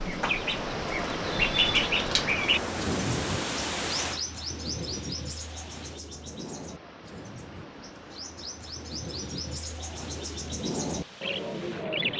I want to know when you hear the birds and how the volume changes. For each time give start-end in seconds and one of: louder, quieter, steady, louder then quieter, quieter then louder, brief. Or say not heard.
0.0-12.1 quieter then louder.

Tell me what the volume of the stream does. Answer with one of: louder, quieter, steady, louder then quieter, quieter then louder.
quieter.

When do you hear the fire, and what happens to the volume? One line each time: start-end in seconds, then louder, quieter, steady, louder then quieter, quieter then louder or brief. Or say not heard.
not heard.